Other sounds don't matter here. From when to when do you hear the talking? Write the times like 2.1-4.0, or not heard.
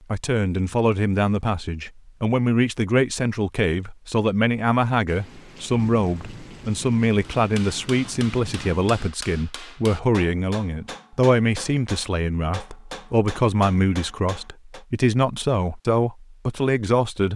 0.1-17.3.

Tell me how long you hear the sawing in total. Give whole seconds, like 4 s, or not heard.
not heard.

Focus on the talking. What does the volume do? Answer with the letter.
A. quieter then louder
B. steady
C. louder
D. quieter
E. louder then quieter
B.